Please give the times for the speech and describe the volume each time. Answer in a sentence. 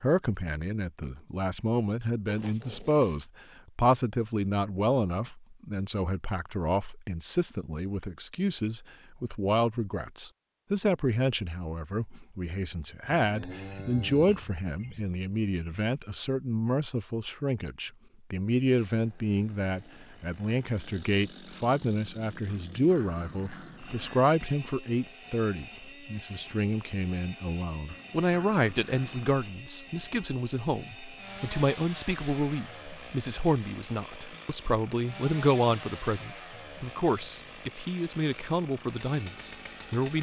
The speech can be heard from 0.0 to 40.1 s, at a steady volume.